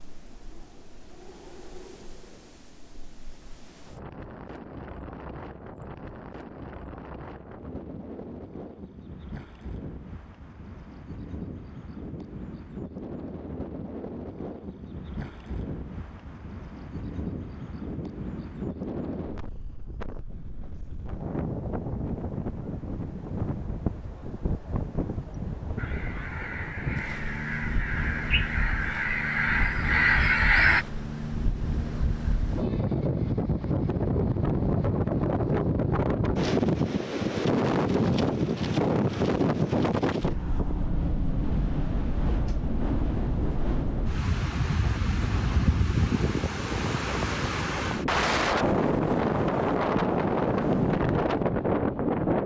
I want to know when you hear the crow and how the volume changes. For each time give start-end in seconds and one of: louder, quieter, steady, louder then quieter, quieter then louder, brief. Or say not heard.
25.8-30.9 louder.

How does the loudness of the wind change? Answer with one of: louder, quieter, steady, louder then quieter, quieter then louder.
louder.